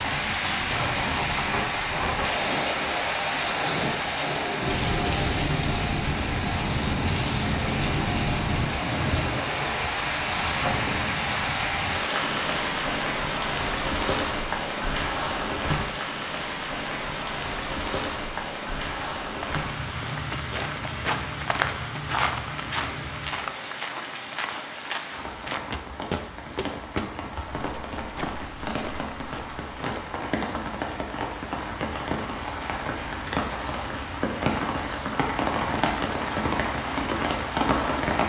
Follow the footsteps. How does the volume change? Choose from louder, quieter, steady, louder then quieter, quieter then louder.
quieter.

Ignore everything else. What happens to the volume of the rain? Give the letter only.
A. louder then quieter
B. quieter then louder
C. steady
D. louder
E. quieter
B.